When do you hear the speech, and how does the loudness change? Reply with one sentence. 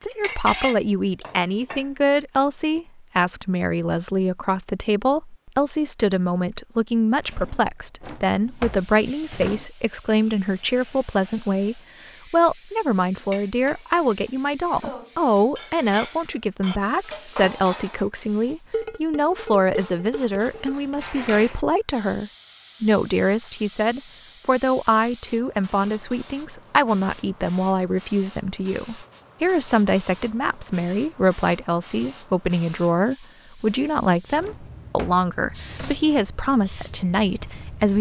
The speech can be heard from 0.0 to 37.9 s, at a steady volume.